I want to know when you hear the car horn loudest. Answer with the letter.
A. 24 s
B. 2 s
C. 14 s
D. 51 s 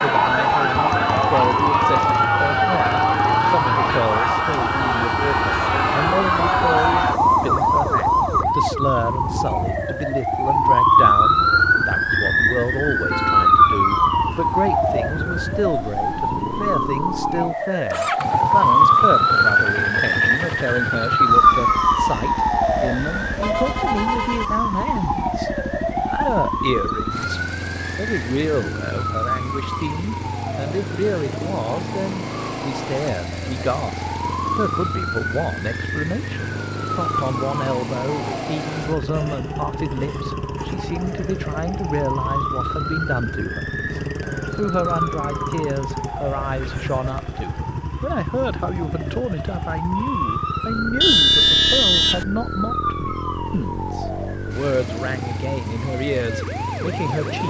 D.